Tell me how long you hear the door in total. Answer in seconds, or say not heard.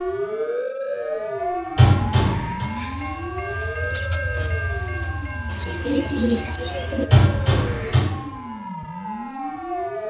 2 s.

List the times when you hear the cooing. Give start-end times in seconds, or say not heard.
5.5-7.1.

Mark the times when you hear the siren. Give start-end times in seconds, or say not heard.
0.0-10.0.